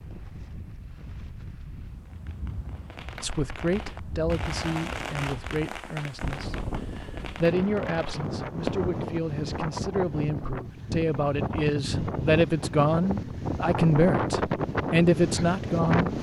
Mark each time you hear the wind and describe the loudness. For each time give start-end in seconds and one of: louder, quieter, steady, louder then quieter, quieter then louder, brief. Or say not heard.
0.0-16.1 louder.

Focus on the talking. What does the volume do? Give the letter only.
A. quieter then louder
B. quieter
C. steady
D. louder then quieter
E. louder
E.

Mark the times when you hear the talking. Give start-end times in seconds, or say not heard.
3.2-16.1.